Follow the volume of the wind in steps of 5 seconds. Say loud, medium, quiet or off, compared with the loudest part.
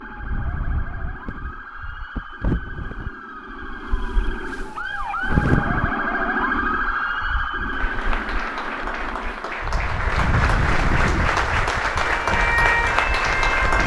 medium, loud, loud.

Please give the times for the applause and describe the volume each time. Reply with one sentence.
The applause can be heard from 7.7 to 13.8 s, getting louder.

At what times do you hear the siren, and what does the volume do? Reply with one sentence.
The siren can be heard from 0.0 to 9.6 s, getting louder then quieter; and briefly from 12.0 to 13.8 s.